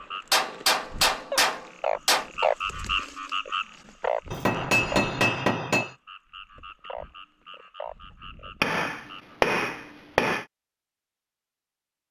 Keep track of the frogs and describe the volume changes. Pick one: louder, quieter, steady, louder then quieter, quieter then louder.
louder then quieter.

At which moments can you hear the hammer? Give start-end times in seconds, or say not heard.
0.3-2.3, 4.3-5.9, 8.6-10.4.